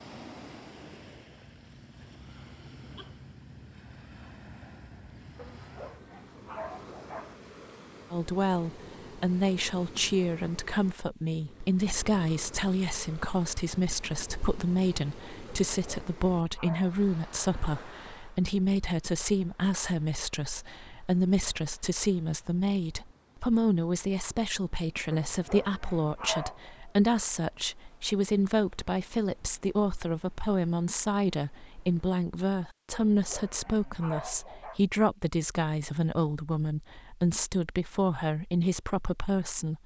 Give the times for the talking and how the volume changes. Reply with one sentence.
You can hear the talking from 8.1 to 39.8 s, at a steady volume.